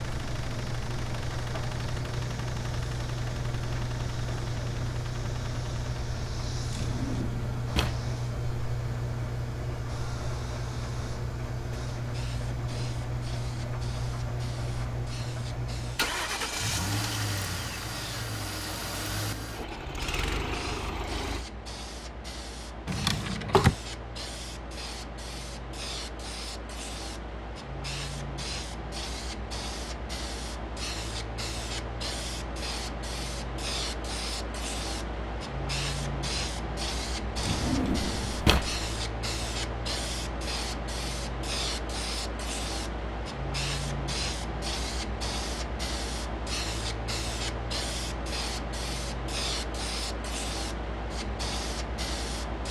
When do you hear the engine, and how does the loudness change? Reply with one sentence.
The engine can be heard from 0.0 to 21.4 s, at a steady volume.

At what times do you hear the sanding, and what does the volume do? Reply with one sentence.
The sanding can't be heard in this clip.